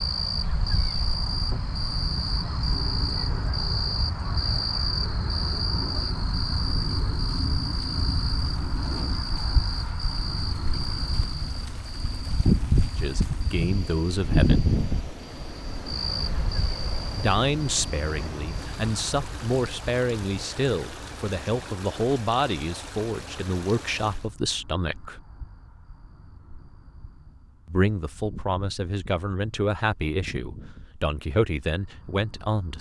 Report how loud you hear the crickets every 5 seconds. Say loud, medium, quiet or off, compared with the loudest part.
loud, loud, loud, medium, quiet, quiet, quiet.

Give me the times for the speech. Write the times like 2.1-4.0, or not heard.
12.9-14.7, 17.1-25.1, 27.6-32.7.